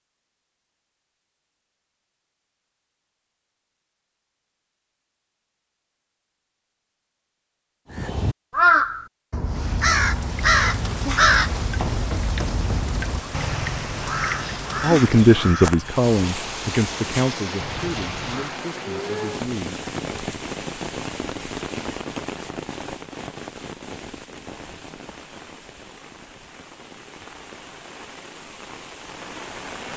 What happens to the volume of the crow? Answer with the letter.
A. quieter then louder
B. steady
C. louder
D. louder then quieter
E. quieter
E.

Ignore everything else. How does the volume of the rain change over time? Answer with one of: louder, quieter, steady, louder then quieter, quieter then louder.
quieter.